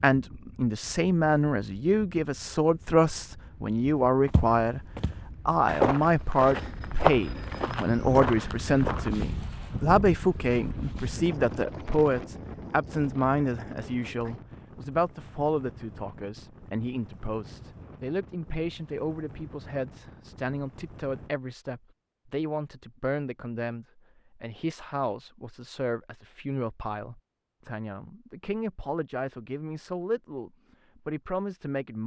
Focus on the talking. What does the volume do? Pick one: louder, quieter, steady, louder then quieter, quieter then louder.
quieter.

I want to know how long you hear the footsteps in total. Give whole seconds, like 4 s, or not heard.
5 s.